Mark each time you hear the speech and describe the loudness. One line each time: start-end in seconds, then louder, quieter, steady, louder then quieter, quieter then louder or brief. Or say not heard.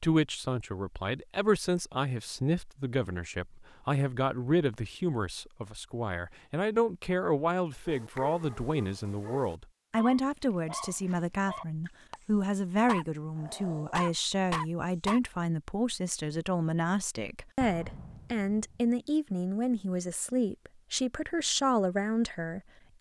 0.0-22.9 steady.